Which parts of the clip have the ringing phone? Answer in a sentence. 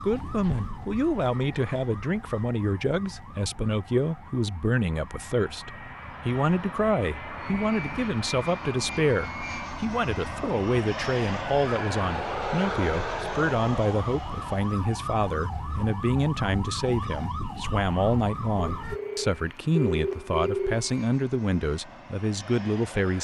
The ringing phone can be heard from 18.6 to 20.9 s.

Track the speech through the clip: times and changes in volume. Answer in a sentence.
You can hear the speech from 0.0 to 23.1 s, at a steady volume.